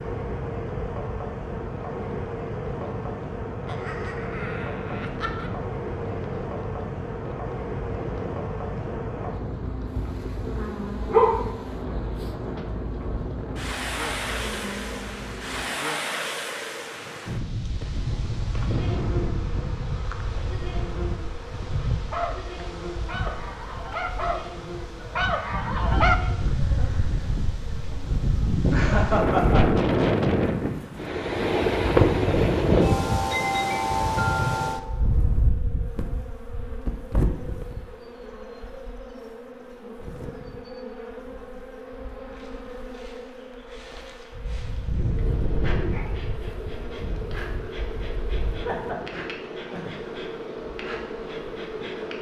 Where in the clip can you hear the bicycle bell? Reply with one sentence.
The bicycle bell can't be heard in this clip.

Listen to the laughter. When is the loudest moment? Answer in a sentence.
The loudest moment of the laughter is at 29 seconds.